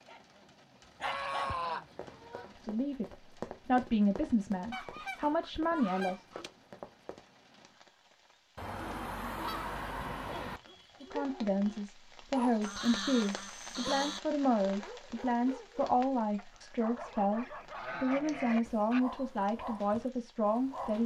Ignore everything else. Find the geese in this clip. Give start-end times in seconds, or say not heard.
1.0-2.5, 4.7-6.5, 8.6-10.6, 12.6-14.2, 17.0-19.0.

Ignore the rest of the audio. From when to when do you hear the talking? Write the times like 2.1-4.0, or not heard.
2.5-6.5, 11.0-21.0.